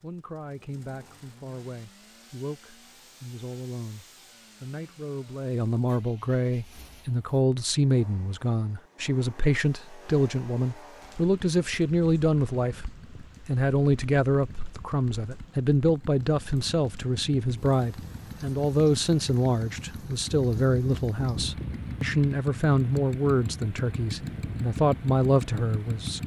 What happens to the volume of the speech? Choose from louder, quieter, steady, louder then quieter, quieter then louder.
louder.